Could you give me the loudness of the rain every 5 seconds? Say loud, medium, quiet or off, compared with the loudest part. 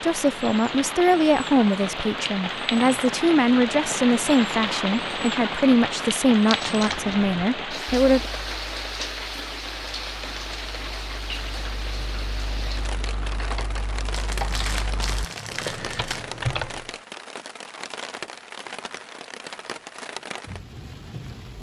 loud, loud, medium, medium, medium.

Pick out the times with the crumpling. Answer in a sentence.
The crumpling can be heard from 6.5 to 7.2 s and from 14.1 to 16.2 s.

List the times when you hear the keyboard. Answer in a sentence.
The keyboard can be heard from 6.9 to 16.9 s.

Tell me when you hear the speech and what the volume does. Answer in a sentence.
The speech can be heard from 0.0 to 8.3 s, at a steady volume.